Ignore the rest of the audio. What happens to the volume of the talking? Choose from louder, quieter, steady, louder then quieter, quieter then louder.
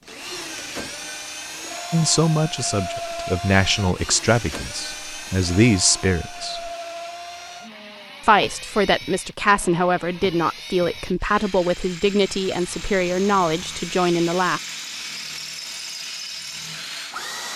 steady.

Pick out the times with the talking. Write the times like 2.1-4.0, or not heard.
1.9-6.7, 8.2-14.6.